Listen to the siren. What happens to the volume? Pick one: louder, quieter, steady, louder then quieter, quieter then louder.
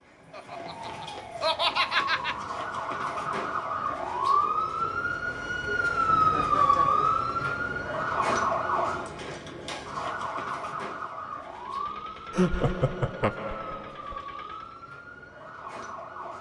louder then quieter.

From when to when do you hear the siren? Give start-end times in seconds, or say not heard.
0.0-16.3.